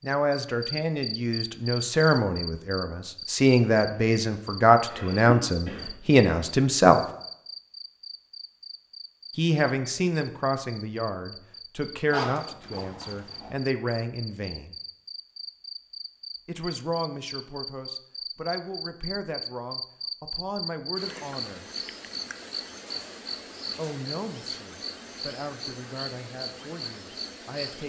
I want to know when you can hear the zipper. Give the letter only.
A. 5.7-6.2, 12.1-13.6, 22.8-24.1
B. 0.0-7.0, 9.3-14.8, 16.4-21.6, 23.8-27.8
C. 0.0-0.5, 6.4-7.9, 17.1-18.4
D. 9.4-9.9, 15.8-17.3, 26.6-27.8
A.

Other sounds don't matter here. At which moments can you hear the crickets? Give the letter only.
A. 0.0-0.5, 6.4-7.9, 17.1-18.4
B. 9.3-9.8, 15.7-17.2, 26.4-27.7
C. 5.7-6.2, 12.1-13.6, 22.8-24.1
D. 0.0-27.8
D.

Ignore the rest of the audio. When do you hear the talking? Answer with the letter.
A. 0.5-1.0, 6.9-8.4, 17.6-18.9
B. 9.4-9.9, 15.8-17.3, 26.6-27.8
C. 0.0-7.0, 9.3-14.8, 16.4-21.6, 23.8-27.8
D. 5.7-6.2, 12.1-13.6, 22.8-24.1
C.